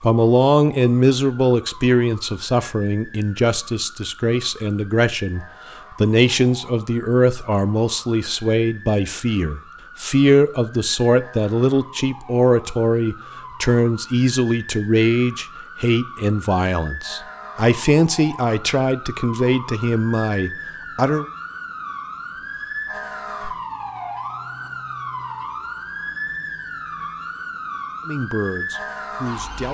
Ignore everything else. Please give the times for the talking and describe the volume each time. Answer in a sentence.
You can hear the talking from 0.0 to 21.2 s, at a steady volume; and briefly from 28.1 to 29.6 s.